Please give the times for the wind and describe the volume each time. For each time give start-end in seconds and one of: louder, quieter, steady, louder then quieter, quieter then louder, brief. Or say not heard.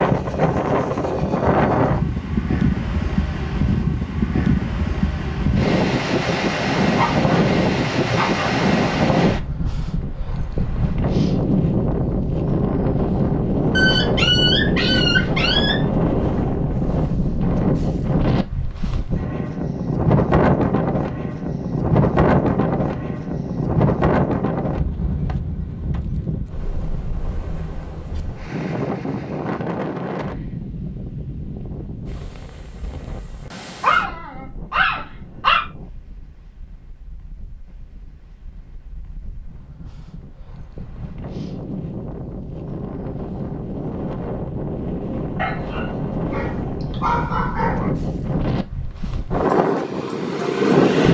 0.0-51.0 quieter then louder.